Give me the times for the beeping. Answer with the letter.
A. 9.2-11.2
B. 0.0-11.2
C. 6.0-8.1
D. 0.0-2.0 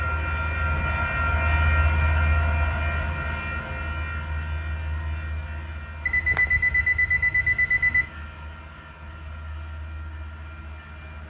C.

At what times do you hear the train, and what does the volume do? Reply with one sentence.
You can hear the train from 0.0 to 11.2 s, getting quieter.